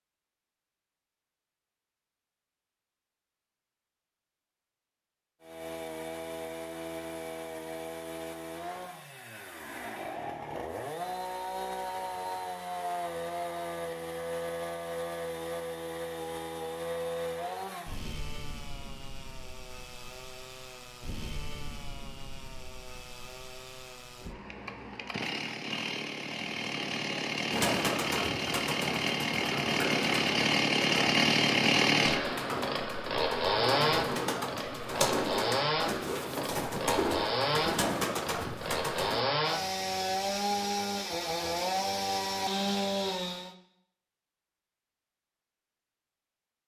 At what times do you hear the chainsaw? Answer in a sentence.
You can hear the chainsaw from 5.4 to 43.5 s.